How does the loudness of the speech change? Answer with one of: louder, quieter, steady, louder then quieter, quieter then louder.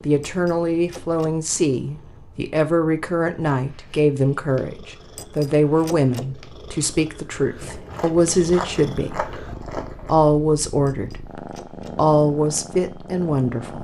steady.